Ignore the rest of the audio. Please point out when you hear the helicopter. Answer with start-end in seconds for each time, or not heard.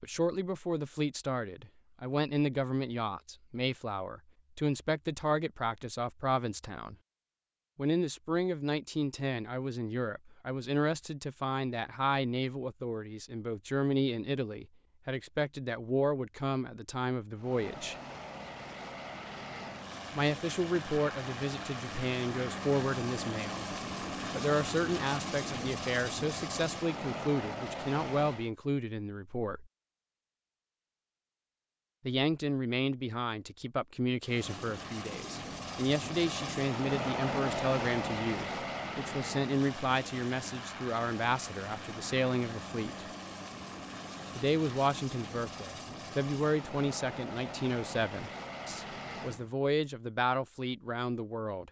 17.4-28.5, 34.2-49.5.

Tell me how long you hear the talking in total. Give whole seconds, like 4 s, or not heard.
44 s.